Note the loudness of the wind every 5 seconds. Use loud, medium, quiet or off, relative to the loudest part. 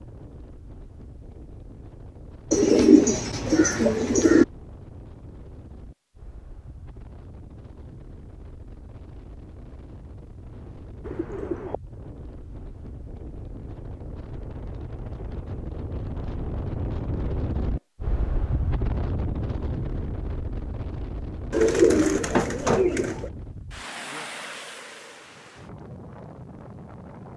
quiet, quiet, medium, loud, medium, medium.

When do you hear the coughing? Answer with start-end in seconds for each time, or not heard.
not heard.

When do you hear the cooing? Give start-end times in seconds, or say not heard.
2.5-4.5, 11.0-11.8, 21.5-23.3.